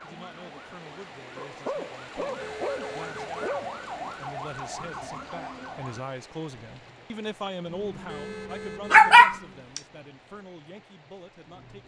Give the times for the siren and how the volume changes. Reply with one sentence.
You can hear the siren from 0.0 to 6.0 s, getting louder.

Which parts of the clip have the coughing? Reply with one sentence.
You can't hear the coughing here.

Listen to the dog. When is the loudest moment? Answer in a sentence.
The loudest moment of the dog is at 9 seconds.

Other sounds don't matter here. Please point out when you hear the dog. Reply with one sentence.
You can hear the dog from 1.4 to 3.9 s and from 8.9 to 9.8 s.